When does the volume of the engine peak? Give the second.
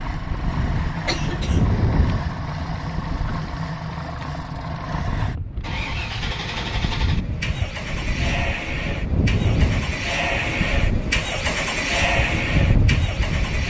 12 s.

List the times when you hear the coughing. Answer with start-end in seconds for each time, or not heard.
1.1-1.8.